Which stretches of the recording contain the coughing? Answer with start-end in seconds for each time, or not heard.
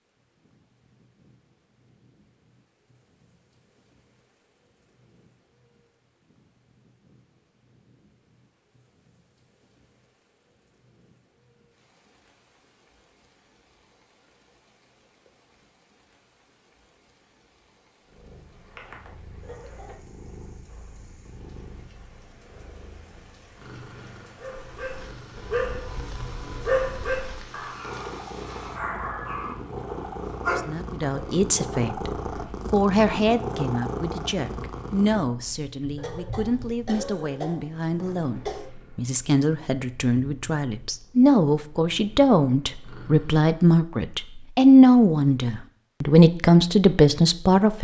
19.4-20.1, 36.0-38.7.